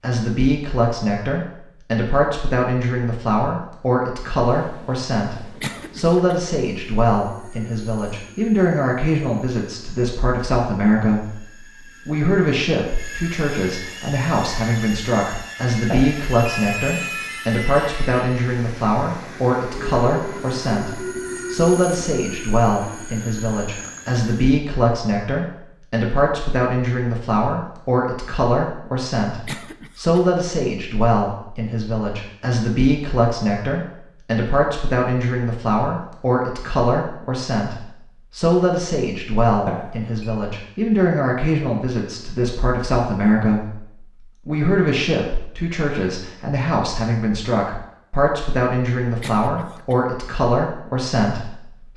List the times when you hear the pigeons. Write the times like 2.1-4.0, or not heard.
not heard.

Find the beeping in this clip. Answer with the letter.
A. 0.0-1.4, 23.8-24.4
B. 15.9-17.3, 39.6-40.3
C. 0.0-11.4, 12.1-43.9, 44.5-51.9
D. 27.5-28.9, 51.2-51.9
B.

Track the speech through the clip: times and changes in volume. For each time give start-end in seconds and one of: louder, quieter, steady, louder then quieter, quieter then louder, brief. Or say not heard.
0.0-11.4 steady
12.1-43.9 steady
44.5-51.9 steady.